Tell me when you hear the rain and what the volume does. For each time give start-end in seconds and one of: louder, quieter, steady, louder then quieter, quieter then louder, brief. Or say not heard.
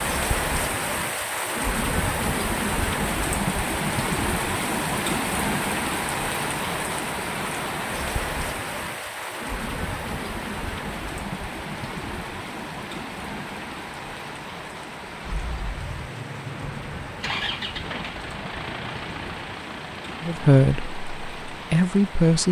0.0-22.4 quieter.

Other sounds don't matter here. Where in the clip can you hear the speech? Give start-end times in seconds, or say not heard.
20.2-22.4.